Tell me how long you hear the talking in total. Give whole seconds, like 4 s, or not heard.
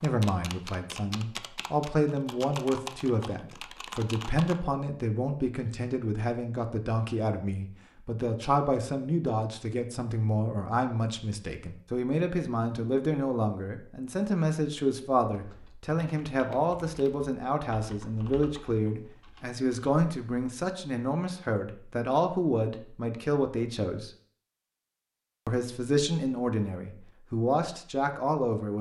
27 s.